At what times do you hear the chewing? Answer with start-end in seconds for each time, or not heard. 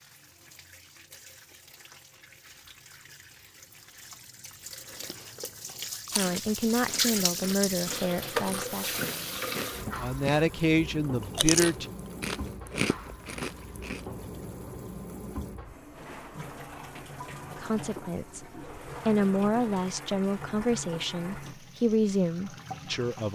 4.9-10.4, 11.0-14.0.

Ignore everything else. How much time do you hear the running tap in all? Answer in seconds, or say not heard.
23 s.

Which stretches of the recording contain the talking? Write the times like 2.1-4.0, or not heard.
6.1-11.8, 17.6-23.2.